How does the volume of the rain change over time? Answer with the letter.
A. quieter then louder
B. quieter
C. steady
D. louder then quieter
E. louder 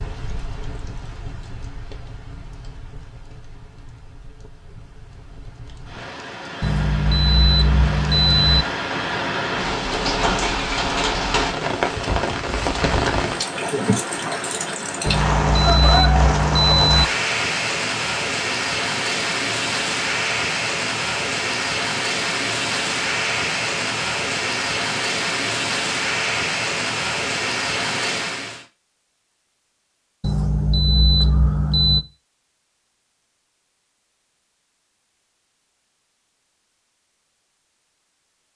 E.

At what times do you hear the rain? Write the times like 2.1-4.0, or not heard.
0.0-28.6.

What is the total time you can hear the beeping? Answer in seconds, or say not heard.
6 s.